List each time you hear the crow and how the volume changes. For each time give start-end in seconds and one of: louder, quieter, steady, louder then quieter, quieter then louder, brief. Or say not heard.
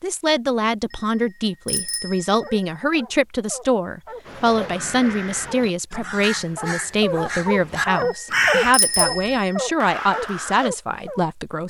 4.2-10.7 louder then quieter.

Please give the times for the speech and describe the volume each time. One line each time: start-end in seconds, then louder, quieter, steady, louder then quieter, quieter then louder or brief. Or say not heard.
0.0-11.6 steady.